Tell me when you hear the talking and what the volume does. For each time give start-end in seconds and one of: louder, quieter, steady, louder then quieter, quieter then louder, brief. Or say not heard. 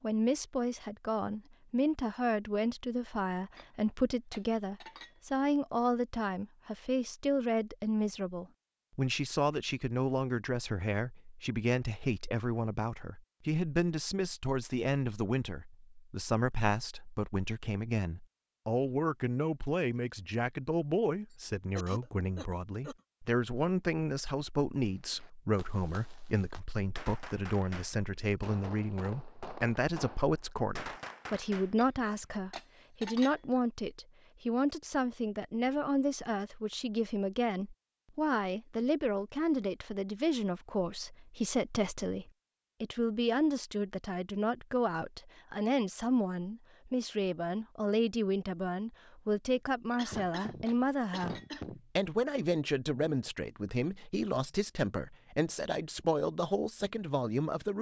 0.0-57.7 steady.